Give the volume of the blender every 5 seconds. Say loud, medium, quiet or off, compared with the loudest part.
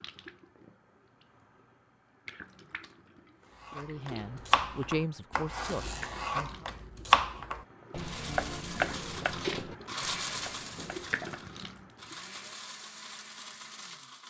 off, loud, loud.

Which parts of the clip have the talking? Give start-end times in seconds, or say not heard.
3.8-6.7.